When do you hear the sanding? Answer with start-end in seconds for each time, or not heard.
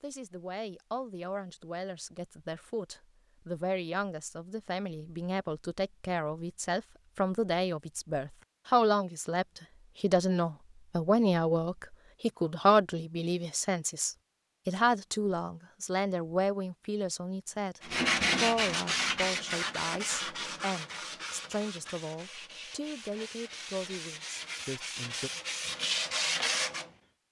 17.8-26.9.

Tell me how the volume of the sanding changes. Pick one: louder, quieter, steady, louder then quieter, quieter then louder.
quieter then louder.